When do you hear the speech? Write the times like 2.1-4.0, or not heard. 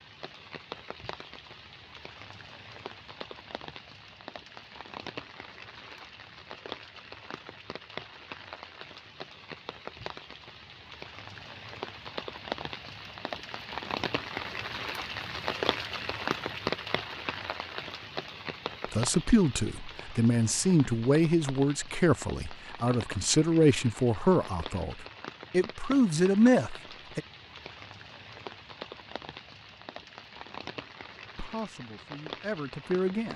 18.9-27.2, 31.4-33.3.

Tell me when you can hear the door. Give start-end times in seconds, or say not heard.
not heard.